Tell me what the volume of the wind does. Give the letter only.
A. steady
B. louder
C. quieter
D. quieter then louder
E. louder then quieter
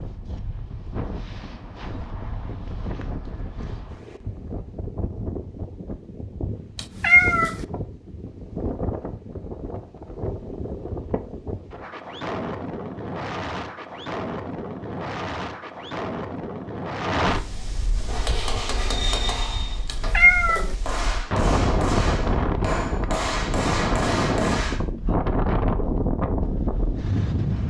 B.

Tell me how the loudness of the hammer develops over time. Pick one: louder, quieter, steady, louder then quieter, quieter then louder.
quieter then louder.